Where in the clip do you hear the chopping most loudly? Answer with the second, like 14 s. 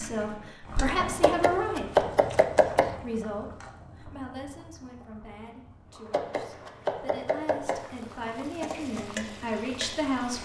2 s.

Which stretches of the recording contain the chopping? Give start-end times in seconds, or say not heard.
1.2-3.0, 6.1-7.8.